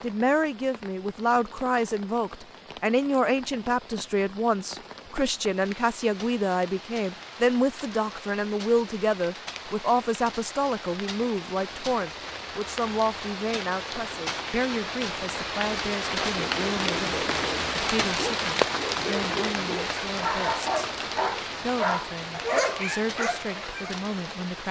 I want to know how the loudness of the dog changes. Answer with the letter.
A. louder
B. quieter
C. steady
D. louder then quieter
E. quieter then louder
A.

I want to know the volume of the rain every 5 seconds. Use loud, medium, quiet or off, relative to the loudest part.
quiet, quiet, medium, loud, medium.